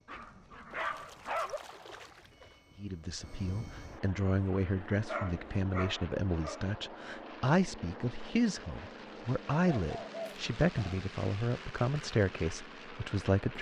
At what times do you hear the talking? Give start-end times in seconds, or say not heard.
2.8-13.5.